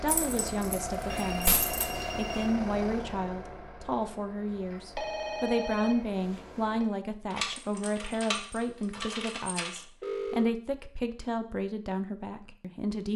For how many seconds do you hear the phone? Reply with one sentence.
You can hear the phone for 4 seconds altogether.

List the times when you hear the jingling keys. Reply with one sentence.
The jingling keys can be heard from 0.1 to 1.9 s and from 7.3 to 9.8 s.